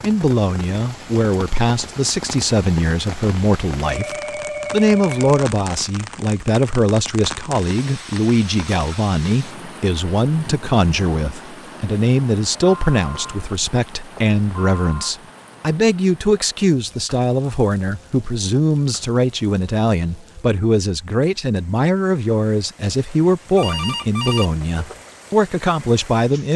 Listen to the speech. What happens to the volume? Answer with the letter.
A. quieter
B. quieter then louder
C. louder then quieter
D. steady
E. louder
D.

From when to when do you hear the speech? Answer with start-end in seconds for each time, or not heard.
0.0-26.5.